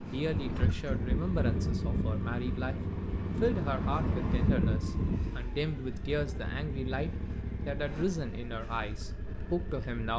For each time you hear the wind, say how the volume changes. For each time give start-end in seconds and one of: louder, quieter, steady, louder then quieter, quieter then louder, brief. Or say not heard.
0.0-5.3 quieter then louder.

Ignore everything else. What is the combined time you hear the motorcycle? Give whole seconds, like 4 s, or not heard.
10 s.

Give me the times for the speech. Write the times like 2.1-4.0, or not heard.
0.0-10.1.